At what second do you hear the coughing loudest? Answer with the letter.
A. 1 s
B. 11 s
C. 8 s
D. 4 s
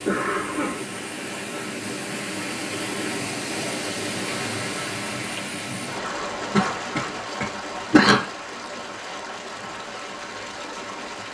C.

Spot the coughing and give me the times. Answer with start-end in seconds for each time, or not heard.
0.1-0.8, 6.5-8.2.